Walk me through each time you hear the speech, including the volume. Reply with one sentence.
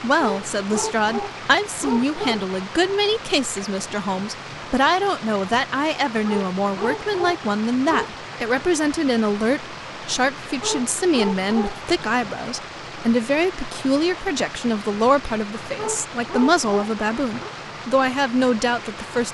The speech can be heard from 0.0 to 19.2 s, at a steady volume.